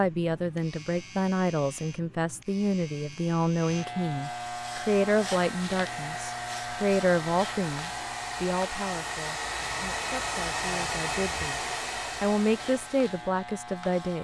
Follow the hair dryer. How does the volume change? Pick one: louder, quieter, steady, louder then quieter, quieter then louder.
louder.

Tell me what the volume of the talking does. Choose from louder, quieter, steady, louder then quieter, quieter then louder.
quieter then louder.